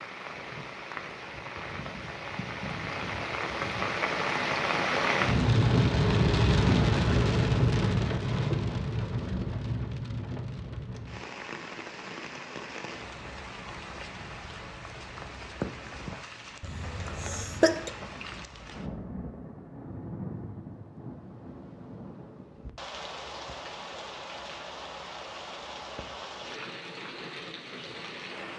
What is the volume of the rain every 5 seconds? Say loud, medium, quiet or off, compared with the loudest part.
medium, loud, quiet, quiet, quiet, quiet.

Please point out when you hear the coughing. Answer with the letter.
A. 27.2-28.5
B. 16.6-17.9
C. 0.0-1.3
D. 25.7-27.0
B.